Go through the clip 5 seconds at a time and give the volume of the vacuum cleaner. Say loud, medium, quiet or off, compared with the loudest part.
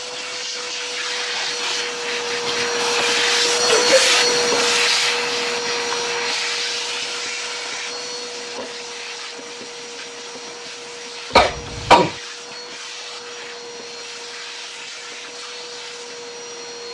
loud, medium, quiet, quiet.